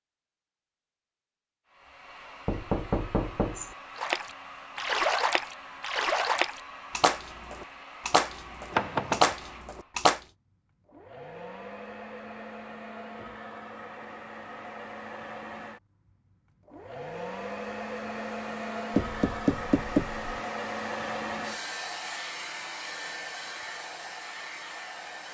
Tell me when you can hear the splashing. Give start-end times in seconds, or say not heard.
4.0-10.2.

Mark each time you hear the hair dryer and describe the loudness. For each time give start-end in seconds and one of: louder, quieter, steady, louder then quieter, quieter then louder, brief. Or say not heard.
1.6-25.2 louder.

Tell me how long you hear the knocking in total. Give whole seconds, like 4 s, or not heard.
3 s.